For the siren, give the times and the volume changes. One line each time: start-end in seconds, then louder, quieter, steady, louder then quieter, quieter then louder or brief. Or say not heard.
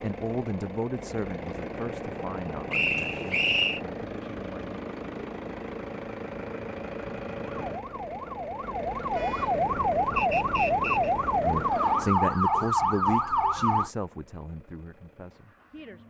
7.6-13.9 louder.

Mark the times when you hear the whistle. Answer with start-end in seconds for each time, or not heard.
2.7-3.8, 10.2-11.1.